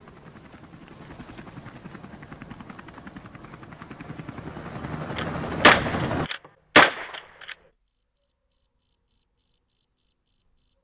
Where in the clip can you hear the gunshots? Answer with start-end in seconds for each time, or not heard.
5.2-7.5.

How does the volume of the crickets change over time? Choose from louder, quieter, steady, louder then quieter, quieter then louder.
quieter then louder.